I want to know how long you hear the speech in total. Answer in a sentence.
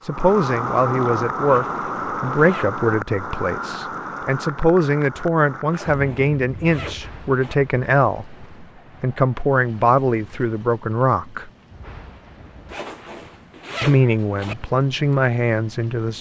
The speech can be heard for 14 seconds in total.